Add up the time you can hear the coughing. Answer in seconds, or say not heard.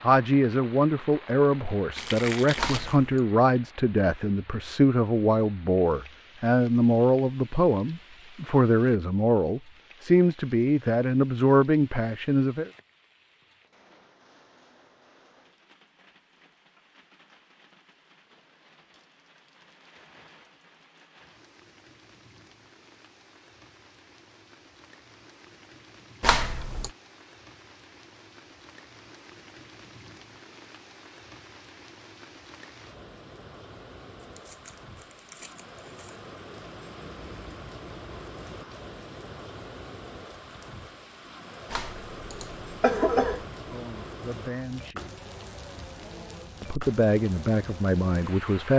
3 s.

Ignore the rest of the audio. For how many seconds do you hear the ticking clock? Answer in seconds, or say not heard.
not heard.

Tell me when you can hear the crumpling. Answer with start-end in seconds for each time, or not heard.
1.9-3.0, 34.2-36.2.